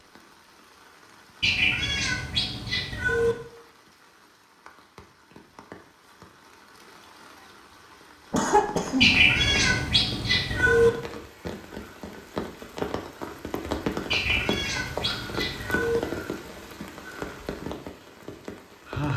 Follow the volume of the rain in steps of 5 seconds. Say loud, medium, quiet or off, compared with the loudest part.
quiet, quiet, loud, loud.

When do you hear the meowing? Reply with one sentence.
The meowing can be heard from 1.4 to 3.4 s, from 9.0 to 10.9 s and from 14.1 to 16.0 s.